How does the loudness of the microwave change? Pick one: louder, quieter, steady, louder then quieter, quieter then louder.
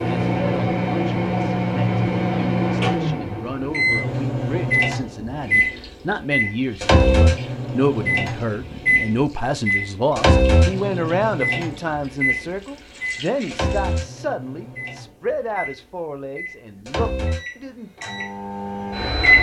quieter.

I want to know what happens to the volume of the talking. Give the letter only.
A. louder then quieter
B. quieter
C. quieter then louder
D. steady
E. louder
A.